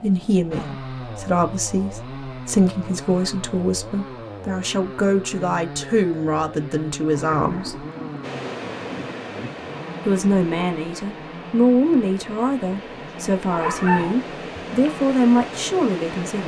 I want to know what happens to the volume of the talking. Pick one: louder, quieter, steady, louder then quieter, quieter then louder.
steady.